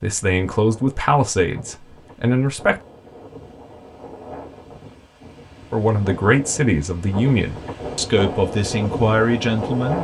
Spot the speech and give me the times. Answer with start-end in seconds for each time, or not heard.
0.0-2.8, 5.7-9.9.